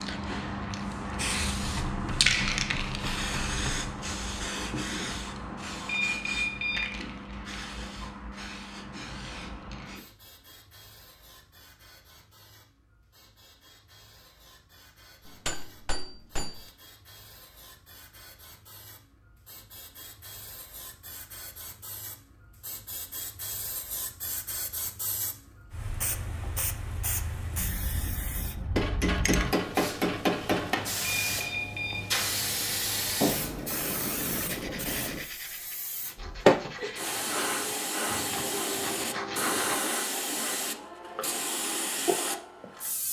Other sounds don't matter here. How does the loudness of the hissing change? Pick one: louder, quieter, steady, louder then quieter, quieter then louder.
quieter then louder.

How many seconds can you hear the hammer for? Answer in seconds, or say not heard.
6 s.